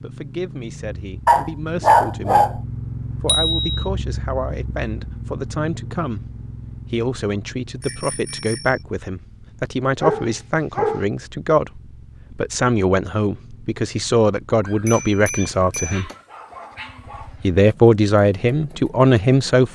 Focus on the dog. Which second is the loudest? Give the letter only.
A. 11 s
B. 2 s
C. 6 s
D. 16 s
B.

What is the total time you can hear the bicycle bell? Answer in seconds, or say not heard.
3 s.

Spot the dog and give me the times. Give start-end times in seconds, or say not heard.
1.2-2.5, 10.0-11.1, 14.6-17.3.